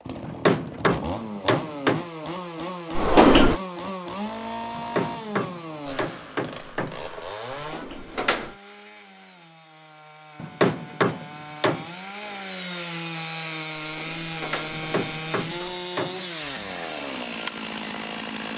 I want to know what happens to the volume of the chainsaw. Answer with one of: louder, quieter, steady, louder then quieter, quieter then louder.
quieter then louder.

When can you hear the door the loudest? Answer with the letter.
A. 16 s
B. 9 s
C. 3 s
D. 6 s
C.